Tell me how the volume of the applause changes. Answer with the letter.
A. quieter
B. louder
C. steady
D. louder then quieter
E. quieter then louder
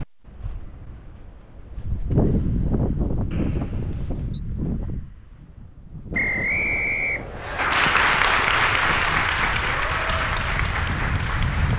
A.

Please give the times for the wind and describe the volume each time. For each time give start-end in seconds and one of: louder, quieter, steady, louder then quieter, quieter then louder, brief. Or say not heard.
0.0-11.7 quieter then louder.